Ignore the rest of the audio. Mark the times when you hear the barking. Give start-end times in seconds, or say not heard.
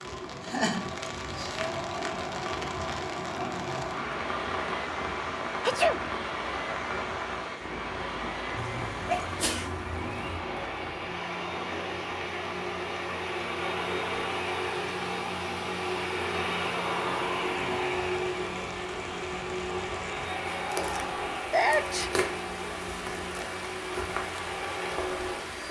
not heard.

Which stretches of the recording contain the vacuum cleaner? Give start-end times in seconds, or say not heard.
0.0-25.6.